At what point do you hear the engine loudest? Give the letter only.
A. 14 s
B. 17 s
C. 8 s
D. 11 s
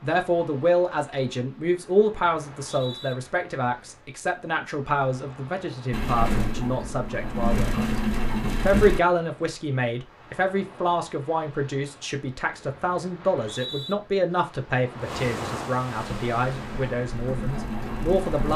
C.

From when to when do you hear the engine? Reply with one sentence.
The engine can be heard from 5.9 to 9.0 s and from 15.9 to 18.5 s.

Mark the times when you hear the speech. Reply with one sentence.
The speech can be heard from 0.0 to 7.8 s and from 8.7 to 18.5 s.